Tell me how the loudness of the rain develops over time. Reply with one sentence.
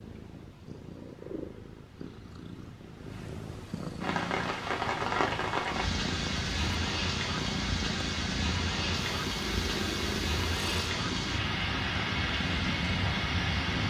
The volume of the rain stays about the same.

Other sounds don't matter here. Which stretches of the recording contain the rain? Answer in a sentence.
The rain can be heard from 4.0 to 13.8 s.